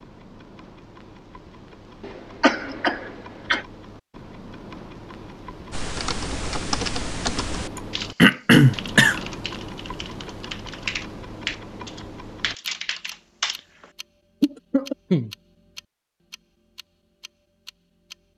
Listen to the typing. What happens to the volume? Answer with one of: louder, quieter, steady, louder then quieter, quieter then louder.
quieter then louder.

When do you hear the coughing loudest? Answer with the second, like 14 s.
9 s.